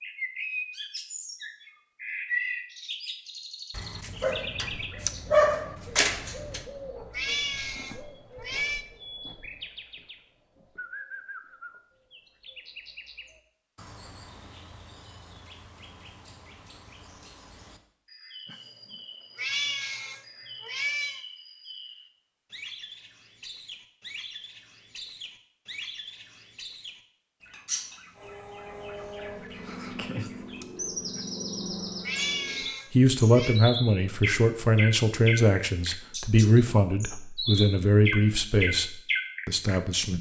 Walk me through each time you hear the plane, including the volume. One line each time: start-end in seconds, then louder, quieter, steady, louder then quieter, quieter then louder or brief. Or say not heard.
28.1-32.8 steady.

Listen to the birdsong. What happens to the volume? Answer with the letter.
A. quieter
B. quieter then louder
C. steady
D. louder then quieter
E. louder
B.